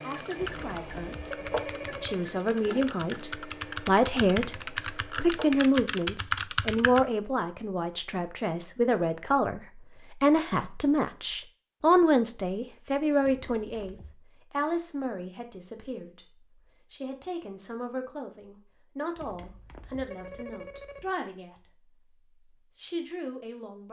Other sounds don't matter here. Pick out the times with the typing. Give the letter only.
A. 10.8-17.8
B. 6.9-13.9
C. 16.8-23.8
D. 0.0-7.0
D.